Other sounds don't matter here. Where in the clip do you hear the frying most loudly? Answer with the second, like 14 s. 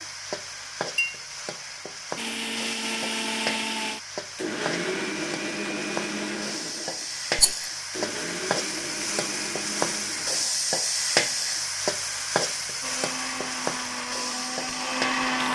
11 s.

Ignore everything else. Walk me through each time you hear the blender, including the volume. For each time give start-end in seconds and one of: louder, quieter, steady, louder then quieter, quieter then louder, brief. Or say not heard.
2.1-10.4 quieter
12.8-15.5 brief.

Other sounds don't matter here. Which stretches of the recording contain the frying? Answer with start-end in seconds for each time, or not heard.
0.0-15.5.